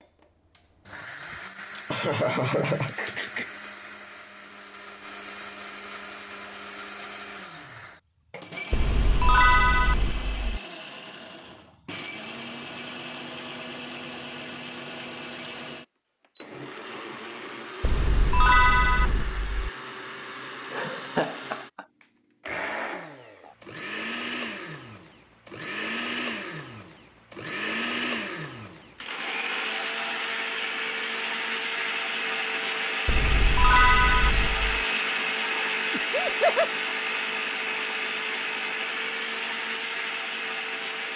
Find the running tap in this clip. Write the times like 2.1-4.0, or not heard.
not heard.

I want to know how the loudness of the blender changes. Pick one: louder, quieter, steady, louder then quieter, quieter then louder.
louder.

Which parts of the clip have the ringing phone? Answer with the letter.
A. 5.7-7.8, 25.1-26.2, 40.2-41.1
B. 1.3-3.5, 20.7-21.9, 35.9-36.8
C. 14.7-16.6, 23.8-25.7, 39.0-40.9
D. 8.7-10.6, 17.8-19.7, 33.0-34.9
D.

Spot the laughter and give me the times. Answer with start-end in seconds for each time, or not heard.
1.3-3.5, 20.7-21.9, 35.9-36.8.